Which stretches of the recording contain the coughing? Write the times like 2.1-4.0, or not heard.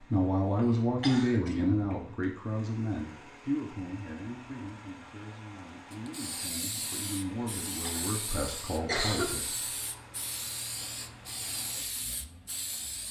0.6-1.6, 7.8-9.4.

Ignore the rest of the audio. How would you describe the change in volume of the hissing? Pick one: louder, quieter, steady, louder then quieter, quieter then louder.
steady.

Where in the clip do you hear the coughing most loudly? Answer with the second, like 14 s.
9 s.